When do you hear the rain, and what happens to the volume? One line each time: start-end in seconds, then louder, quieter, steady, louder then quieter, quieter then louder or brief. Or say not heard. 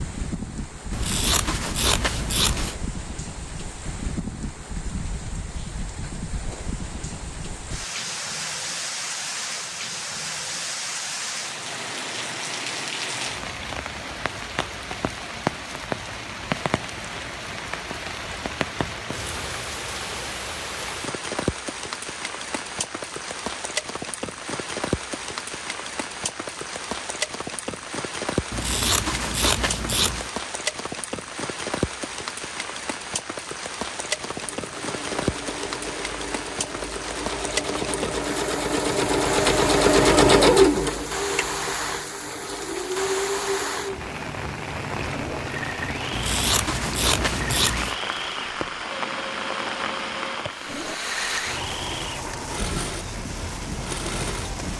0.0-54.7 steady.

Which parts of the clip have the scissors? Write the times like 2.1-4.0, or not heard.
0.9-2.8, 28.5-30.3, 46.1-48.0.